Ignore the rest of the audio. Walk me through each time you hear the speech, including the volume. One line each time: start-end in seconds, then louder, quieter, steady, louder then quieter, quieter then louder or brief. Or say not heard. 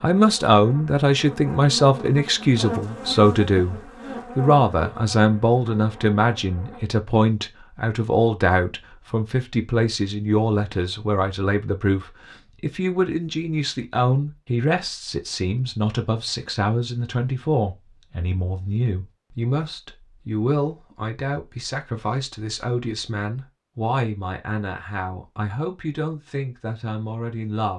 0.0-27.7 quieter.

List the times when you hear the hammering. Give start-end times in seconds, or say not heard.
not heard.